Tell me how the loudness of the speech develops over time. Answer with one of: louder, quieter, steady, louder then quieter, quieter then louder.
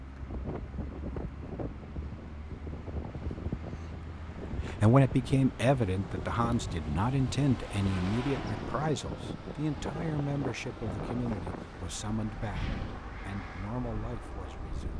quieter.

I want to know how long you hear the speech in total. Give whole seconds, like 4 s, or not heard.
10 s.